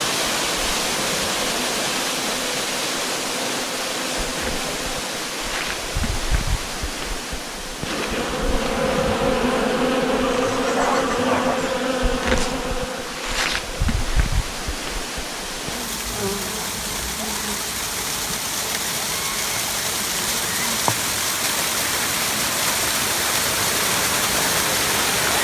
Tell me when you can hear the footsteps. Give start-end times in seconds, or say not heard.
not heard.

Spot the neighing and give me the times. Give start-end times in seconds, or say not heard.
10.2-11.8.